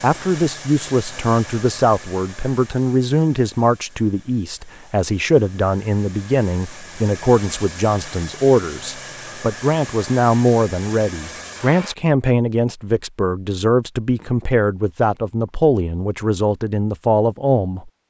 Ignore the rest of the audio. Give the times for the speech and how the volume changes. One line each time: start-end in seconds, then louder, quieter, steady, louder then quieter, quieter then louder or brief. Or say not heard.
0.0-17.9 steady.